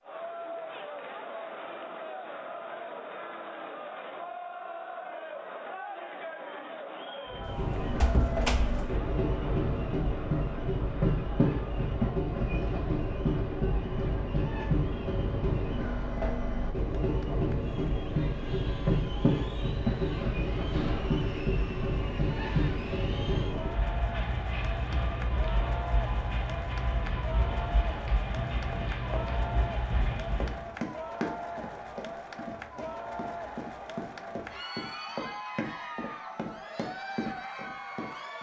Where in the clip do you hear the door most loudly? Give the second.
8 s.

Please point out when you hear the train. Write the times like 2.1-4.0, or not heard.
7.3-30.6.